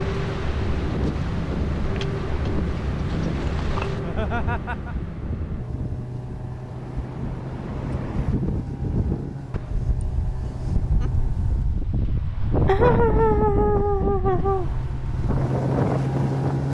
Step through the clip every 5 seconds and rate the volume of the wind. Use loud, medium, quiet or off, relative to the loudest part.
medium, medium, loud, loud.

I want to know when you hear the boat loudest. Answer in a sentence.
The loudest moment of the boat is at 16 seconds.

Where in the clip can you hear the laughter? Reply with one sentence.
The laughter can be heard from 3.9 to 5.0 s and from 12.7 to 14.7 s.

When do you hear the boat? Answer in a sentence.
The boat can be heard from 0.0 to 11.9 s and from 14.3 to 16.6 s.